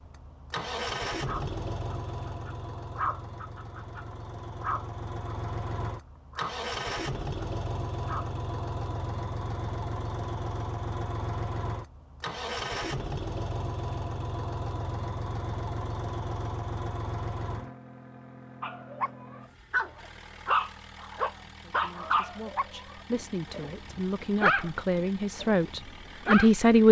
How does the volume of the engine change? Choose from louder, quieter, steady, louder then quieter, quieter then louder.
quieter.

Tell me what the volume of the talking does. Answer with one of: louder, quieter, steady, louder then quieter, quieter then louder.
louder.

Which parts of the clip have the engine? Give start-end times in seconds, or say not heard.
0.0-26.8.